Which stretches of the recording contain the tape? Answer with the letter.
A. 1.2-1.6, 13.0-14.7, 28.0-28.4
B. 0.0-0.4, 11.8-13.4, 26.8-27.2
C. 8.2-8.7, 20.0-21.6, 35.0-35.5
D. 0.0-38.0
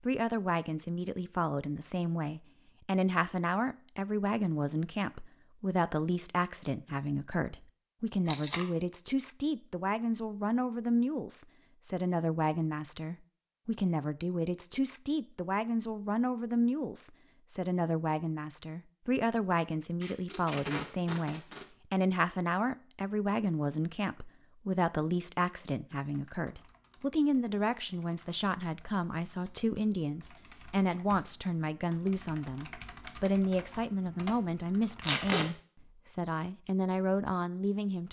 C.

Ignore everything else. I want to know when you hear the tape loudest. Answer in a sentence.
The volume of the tape peaks at 35 seconds.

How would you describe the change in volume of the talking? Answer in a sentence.
The loudness of the talking stays about the same.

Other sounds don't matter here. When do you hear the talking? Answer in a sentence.
The talking can be heard from 0.0 to 38.0 s.